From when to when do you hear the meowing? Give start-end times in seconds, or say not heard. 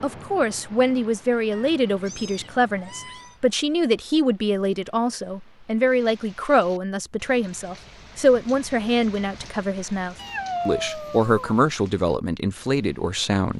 1.5-3.4, 10.2-11.6.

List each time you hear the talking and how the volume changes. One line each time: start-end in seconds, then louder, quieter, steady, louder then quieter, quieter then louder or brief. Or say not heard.
0.0-13.5 steady.